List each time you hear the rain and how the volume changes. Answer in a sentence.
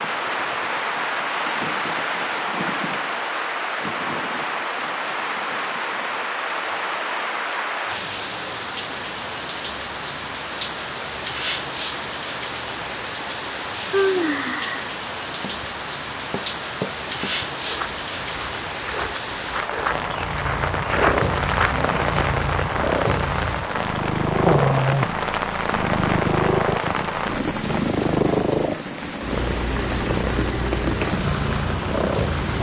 The rain can be heard from 0.0 to 32.5 s, at a steady volume.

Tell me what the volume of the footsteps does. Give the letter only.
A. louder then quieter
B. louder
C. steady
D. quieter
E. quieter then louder
B.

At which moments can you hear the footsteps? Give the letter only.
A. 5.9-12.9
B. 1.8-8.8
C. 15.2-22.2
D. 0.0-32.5
C.